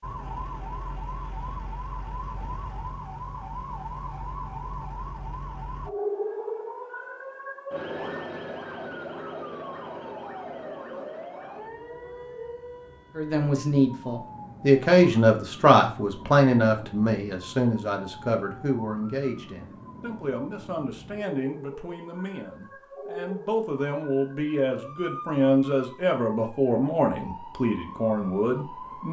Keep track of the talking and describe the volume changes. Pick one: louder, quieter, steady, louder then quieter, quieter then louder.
quieter then louder.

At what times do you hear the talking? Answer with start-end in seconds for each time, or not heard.
13.2-29.0.